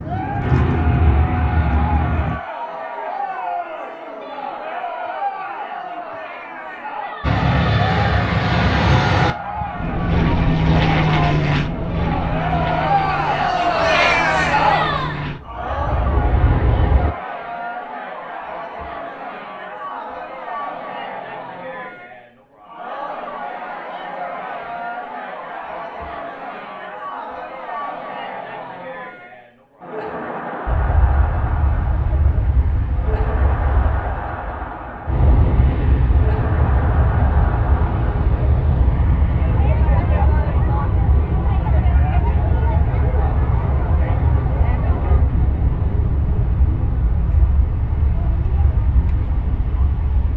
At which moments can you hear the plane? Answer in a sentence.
The plane can be heard from 0.0 to 2.4 s, from 7.2 to 17.1 s and from 30.6 to 50.3 s.